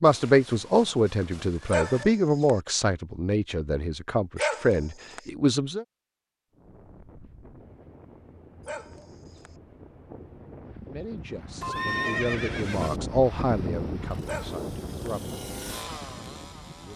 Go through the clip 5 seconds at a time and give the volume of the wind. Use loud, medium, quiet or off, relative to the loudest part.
off, quiet, loud, medium.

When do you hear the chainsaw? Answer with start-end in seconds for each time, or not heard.
14.0-16.9.